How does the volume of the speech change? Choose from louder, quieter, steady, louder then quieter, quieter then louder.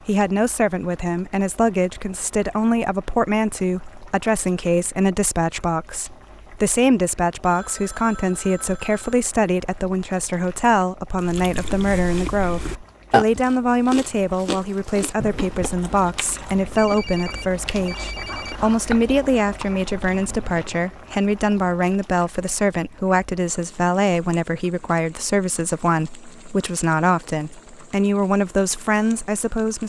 steady.